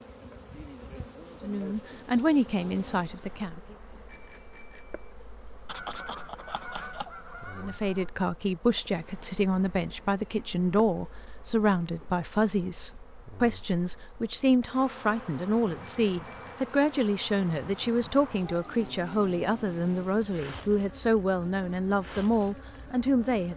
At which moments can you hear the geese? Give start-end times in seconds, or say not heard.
5.7-8.1.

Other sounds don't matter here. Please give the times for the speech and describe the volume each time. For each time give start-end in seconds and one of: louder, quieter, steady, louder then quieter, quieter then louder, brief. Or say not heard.
1.4-3.8 brief
7.5-23.5 steady.